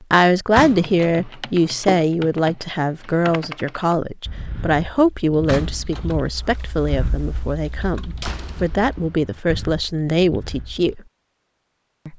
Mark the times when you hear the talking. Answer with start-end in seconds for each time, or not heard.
0.0-11.0.